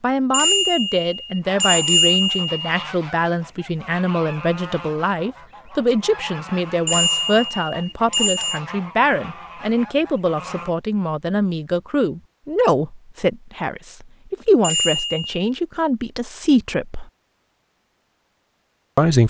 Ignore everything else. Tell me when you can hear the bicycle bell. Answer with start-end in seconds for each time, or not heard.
0.3-2.6, 6.8-8.6, 14.6-15.2.